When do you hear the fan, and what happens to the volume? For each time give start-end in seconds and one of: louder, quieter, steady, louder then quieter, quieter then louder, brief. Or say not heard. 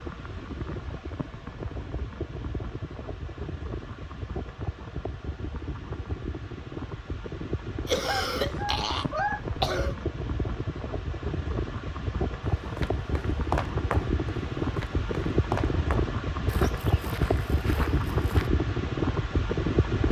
0.0-20.0 louder.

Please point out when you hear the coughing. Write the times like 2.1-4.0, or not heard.
7.8-10.0.